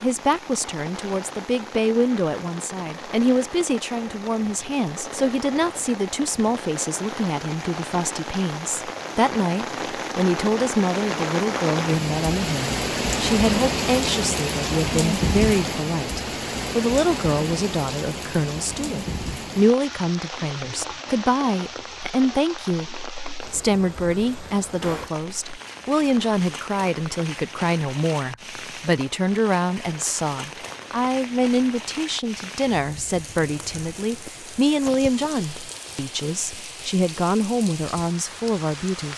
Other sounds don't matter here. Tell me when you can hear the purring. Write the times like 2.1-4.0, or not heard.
not heard.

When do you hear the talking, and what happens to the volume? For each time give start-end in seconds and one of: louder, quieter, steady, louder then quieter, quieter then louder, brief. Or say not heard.
0.0-39.1 steady.